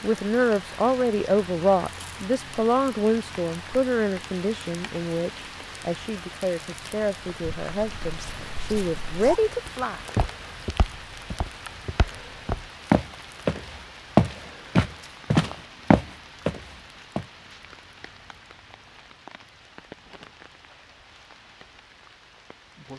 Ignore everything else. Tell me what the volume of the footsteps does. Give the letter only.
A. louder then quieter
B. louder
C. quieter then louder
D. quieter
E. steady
B.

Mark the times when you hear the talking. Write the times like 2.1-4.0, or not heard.
0.0-10.0.